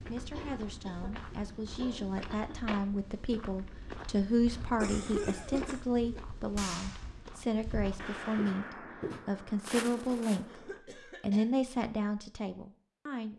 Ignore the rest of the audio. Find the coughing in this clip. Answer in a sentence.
The coughing can be heard from 0.3 to 2.8 s, from 4.8 to 5.8 s and from 10.4 to 11.4 s.